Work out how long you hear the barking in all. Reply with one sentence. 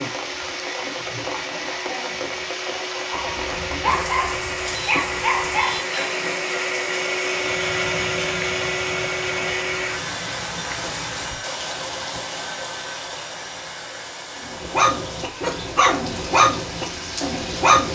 The barking can be heard for 7 seconds in total.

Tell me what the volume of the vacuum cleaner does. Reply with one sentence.
The loudness of the vacuum cleaner goes up, then down.